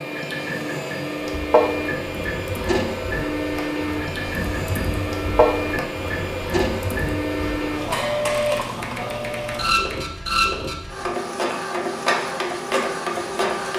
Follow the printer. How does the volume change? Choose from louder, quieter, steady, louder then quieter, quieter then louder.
steady.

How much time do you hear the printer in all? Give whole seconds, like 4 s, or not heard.
14 s.